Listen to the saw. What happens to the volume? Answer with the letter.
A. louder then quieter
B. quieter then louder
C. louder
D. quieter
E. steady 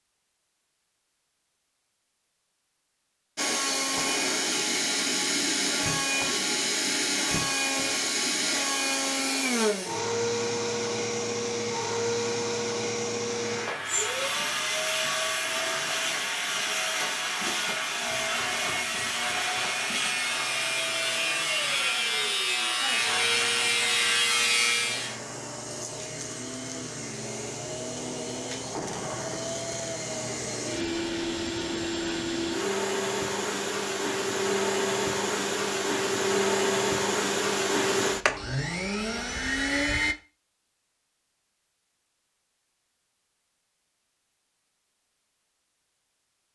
C.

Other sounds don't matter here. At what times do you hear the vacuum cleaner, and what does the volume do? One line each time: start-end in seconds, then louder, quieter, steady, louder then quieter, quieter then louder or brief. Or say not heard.
3.4-40.1 quieter then louder.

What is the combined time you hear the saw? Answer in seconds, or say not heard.
12 s.